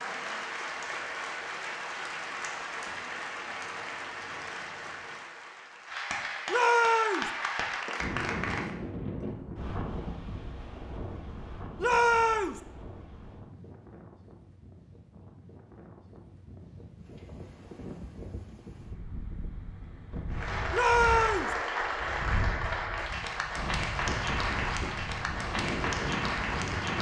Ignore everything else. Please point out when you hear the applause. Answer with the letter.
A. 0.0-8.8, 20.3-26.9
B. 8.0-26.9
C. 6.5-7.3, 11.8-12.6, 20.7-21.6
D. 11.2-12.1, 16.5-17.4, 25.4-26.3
A.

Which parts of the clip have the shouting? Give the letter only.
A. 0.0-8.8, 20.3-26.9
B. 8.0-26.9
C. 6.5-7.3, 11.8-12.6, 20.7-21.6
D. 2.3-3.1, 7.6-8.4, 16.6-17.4
C.